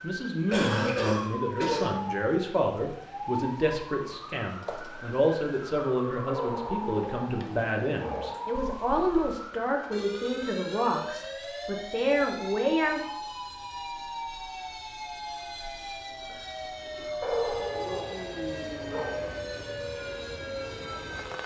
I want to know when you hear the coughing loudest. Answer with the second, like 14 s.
1 s.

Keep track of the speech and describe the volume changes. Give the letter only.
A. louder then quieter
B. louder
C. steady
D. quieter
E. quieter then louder
C.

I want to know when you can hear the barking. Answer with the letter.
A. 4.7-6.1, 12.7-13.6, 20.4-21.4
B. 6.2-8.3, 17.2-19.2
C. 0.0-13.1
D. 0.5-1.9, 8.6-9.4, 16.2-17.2
B.